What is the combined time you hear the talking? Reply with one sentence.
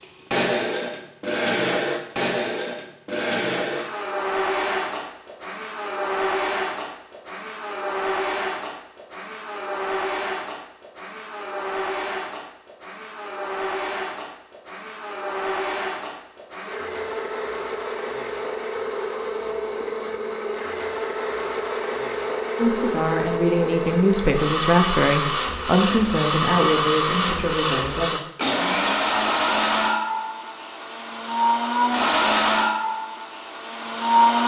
You can hear the talking for 6 seconds altogether.